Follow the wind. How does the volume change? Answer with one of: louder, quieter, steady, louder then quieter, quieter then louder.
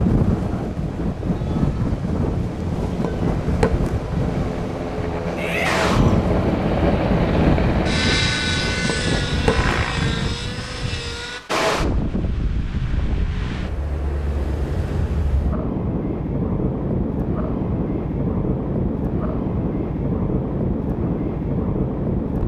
steady.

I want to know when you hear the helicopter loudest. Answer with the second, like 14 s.
7 s.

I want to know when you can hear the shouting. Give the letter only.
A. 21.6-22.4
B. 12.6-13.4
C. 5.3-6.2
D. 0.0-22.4
C.